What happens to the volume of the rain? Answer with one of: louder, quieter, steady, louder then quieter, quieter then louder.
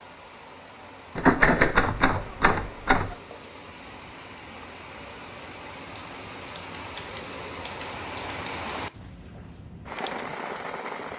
louder.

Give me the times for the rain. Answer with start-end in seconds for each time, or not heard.
0.0-11.1.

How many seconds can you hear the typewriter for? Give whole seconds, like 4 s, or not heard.
4 s.